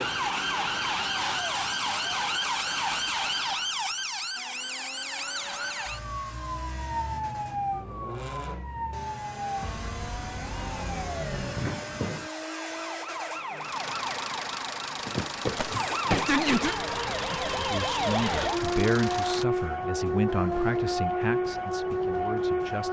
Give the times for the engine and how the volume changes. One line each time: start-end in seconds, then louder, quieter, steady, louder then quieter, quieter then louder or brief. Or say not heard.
4.3-19.4 louder.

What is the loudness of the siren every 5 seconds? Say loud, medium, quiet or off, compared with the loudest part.
loud, medium, medium, loud, loud.